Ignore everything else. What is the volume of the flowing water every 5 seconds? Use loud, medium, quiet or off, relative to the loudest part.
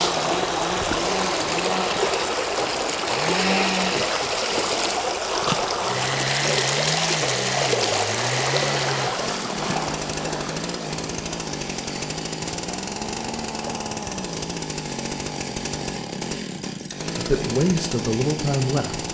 loud, loud, quiet, off.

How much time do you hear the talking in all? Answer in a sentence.
You can hear the talking for 2 seconds altogether.